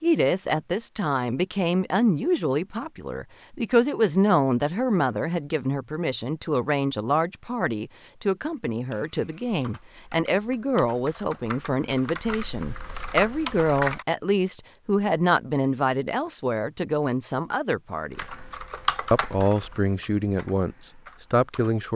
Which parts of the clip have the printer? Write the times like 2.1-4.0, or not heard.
not heard.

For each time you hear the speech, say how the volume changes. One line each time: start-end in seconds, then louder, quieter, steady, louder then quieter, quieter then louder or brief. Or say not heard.
0.0-18.2 steady
19.1-21.9 brief.